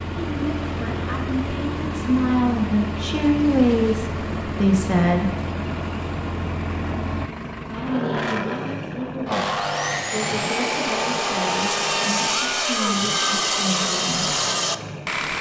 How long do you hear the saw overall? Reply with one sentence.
You can hear the saw for 6 seconds altogether.